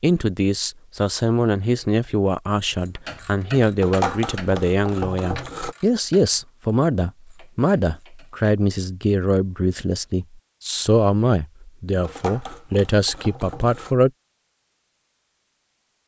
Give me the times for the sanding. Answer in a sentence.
The sanding can be heard from 3.8 to 5.8 s and from 12.0 to 13.9 s.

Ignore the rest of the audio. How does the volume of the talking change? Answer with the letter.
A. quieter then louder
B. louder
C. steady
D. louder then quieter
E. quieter
C.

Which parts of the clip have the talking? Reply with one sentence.
You can hear the talking from 0.0 to 14.1 s.